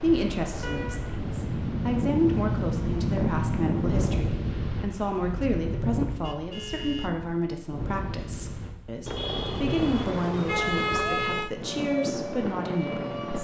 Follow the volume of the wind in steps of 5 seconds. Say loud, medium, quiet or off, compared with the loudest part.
loud, medium, medium.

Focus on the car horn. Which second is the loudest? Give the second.
11 s.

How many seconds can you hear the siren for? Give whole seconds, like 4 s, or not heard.
2 s.